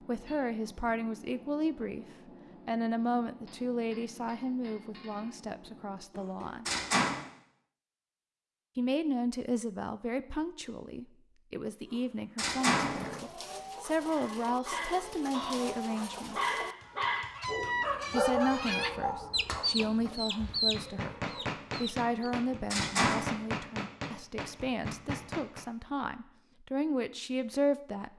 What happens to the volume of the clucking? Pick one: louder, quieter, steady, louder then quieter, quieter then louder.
louder.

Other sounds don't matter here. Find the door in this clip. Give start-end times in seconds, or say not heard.
6.2-7.2, 11.8-13.2, 22.2-23.3.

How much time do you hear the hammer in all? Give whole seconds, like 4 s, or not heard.
16 s.